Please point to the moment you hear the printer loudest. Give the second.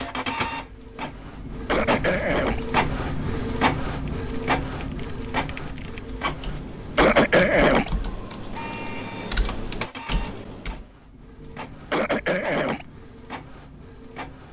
3 s.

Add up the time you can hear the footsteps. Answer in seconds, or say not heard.
not heard.